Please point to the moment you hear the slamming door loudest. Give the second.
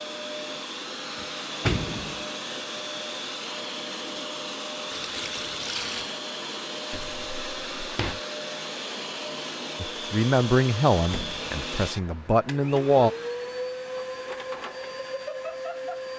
2 s.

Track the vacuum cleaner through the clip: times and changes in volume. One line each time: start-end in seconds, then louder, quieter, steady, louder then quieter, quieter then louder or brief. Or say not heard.
0.0-16.1 steady.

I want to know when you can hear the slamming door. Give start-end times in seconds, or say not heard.
1.1-2.2, 6.9-8.2, 10.9-11.5.